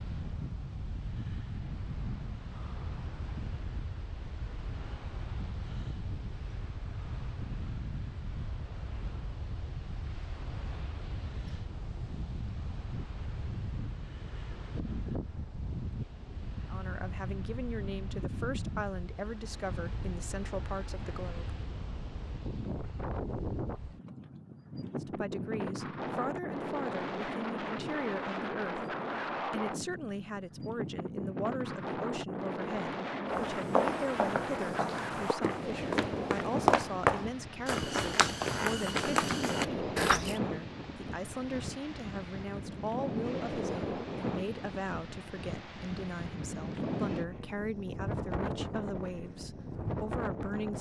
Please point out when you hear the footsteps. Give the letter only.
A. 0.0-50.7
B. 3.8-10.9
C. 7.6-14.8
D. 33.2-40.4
D.